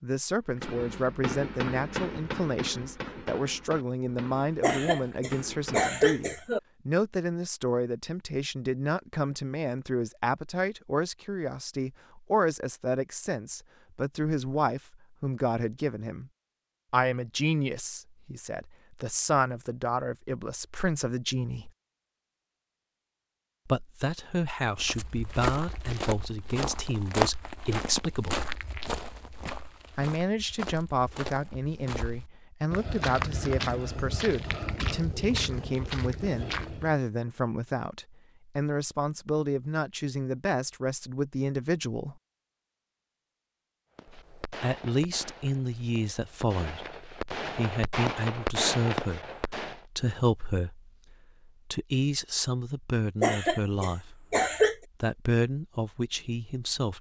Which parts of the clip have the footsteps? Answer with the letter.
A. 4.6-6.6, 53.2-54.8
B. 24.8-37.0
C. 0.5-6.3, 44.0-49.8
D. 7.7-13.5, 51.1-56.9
B.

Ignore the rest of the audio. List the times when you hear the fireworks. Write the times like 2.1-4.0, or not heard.
0.5-6.3, 44.0-49.8.